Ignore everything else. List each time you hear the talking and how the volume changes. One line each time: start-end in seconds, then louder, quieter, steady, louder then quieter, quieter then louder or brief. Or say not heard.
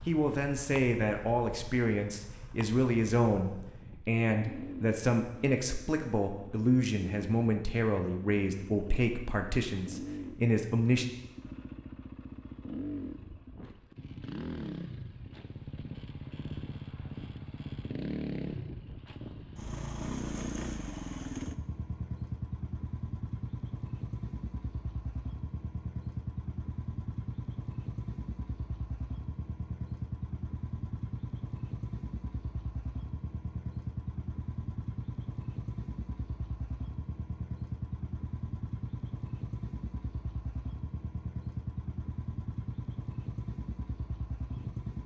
0.1-11.1 steady.